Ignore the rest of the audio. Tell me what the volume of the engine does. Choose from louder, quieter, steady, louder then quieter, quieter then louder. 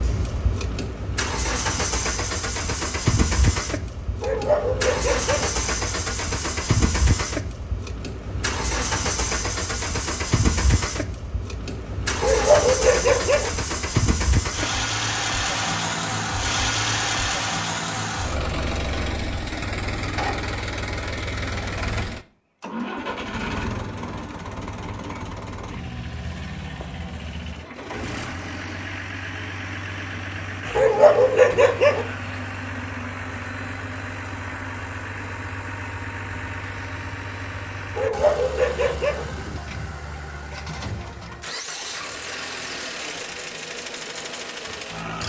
quieter.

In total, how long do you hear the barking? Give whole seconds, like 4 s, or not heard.
5 s.